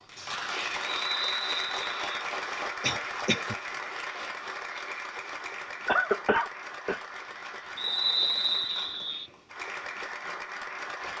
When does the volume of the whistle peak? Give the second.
8 s.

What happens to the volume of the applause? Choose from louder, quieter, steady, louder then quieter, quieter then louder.
quieter.